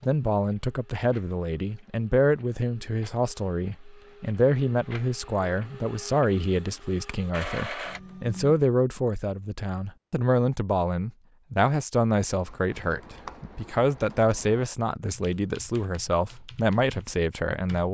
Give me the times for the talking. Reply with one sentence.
You can hear the talking from 0.0 to 17.8 s.